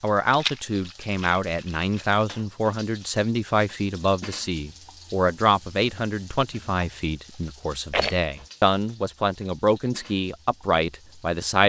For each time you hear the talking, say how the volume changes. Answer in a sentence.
You can hear the talking from 0.0 to 11.6 s, at a steady volume.